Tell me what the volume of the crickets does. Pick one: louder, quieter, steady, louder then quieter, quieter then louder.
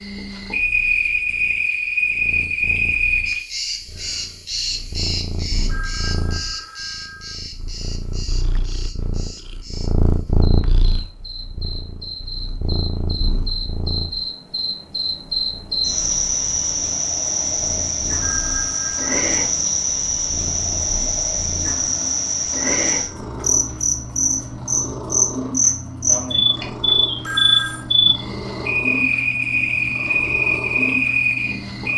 quieter then louder.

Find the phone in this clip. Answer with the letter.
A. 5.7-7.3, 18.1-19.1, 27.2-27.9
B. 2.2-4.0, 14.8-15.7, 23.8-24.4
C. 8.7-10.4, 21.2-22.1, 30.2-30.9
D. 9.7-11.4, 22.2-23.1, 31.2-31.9
A.